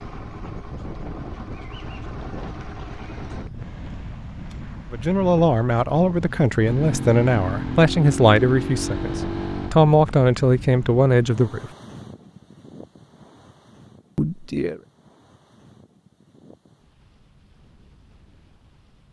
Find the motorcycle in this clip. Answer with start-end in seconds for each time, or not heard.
0.0-3.5, 6.6-9.8.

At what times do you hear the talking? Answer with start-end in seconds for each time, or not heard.
4.9-11.7, 14.2-14.8.